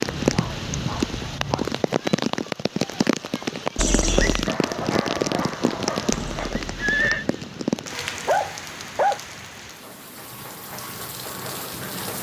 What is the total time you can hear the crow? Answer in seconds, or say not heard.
not heard.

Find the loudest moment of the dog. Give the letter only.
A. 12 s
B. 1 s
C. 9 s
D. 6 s
C.